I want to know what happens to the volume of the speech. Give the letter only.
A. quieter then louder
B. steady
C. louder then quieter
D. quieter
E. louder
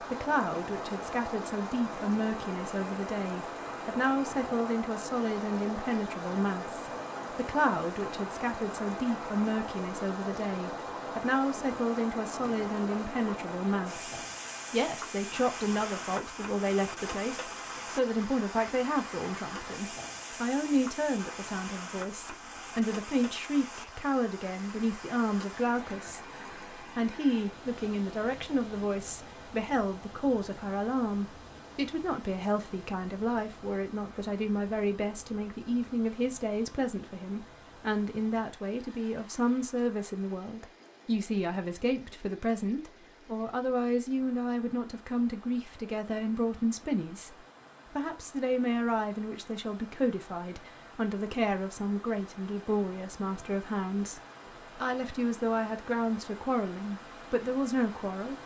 B.